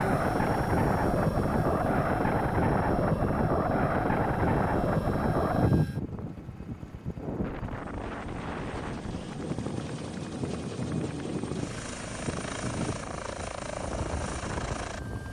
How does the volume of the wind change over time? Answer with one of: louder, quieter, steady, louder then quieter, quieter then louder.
quieter.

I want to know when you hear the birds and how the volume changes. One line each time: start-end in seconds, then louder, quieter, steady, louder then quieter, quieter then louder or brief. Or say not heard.
not heard.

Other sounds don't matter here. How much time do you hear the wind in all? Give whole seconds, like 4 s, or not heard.
15 s.